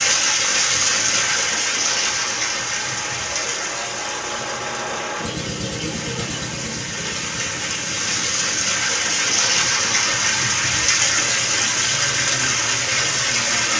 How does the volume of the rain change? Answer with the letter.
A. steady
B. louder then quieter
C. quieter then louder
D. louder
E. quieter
C.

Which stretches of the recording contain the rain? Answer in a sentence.
The rain can be heard from 0.0 to 13.7 s.